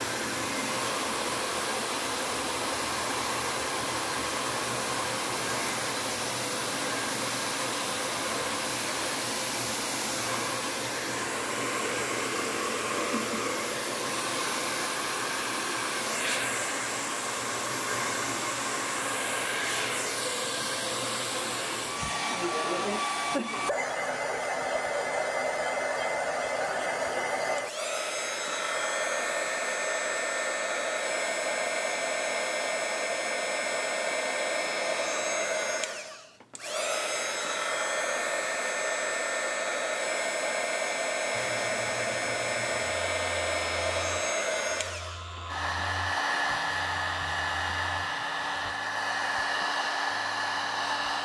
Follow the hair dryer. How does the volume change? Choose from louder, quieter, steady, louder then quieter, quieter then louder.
steady.